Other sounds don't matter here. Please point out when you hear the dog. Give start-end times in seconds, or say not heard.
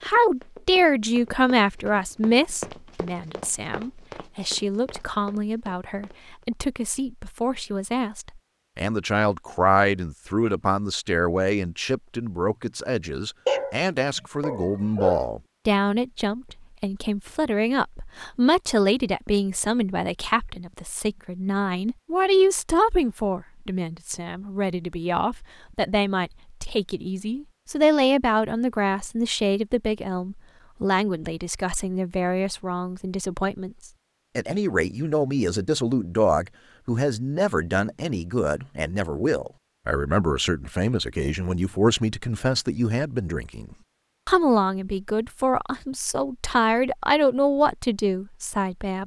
13.4-15.3.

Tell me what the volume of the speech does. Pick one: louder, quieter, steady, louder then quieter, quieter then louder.
steady.